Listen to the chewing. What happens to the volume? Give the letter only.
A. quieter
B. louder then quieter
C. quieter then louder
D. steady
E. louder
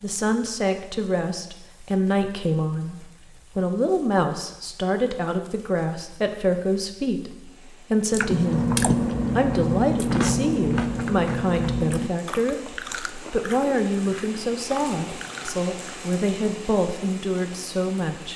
A.